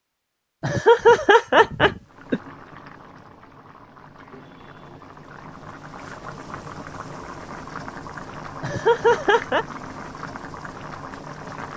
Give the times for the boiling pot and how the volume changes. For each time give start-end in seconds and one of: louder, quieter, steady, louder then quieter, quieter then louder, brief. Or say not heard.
2.0-11.7 louder.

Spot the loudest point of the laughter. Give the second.
1 s.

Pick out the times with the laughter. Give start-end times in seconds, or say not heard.
0.6-2.4, 8.6-9.7.